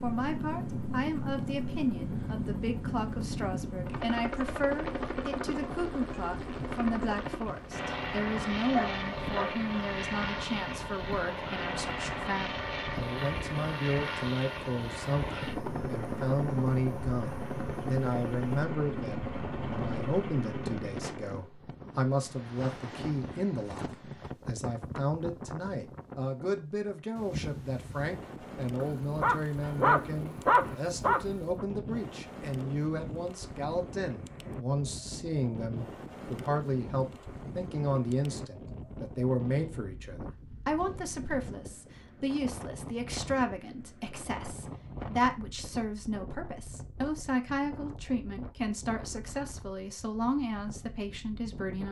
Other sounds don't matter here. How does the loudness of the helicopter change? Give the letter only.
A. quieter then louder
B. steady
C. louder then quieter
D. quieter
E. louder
B.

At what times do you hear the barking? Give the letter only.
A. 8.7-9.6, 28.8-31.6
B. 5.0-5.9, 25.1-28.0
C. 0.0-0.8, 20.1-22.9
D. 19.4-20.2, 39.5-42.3
A.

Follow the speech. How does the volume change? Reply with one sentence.
The volume of the speech stays about the same.